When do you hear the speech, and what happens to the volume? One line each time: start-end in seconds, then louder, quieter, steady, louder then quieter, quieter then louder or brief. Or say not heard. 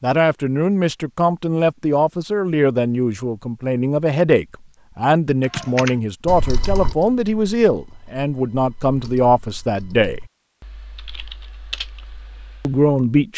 0.0-10.2 steady
12.6-13.3 brief.